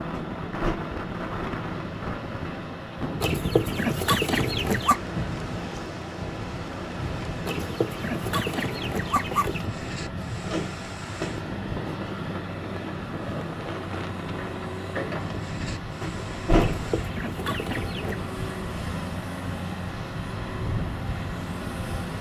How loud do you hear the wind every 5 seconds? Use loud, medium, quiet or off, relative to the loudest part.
loud, loud, loud, medium, off.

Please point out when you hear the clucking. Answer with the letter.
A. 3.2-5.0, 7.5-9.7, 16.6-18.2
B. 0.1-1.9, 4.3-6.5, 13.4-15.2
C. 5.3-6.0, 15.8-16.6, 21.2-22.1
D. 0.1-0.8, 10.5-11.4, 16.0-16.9
A.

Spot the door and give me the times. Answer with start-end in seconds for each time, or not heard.
0.1-0.8, 10.5-11.4, 16.0-16.9.